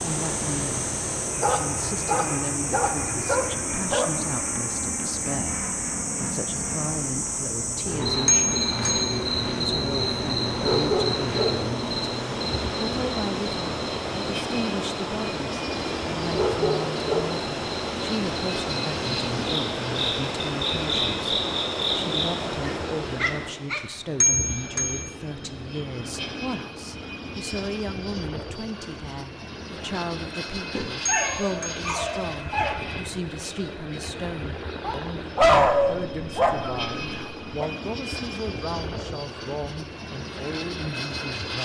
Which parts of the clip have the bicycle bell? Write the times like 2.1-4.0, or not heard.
8.2-9.2, 24.2-25.1, 31.1-31.8.